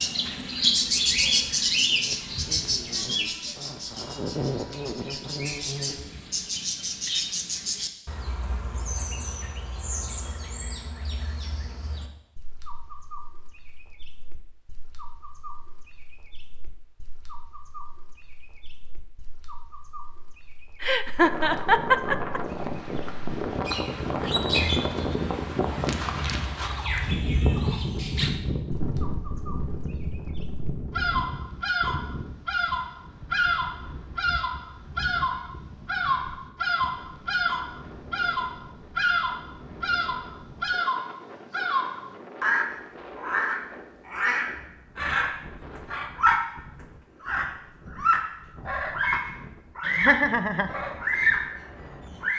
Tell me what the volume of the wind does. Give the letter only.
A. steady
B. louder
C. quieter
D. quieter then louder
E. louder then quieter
C.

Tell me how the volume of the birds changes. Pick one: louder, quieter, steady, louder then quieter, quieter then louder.
quieter then louder.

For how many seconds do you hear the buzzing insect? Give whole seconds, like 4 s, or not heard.
6 s.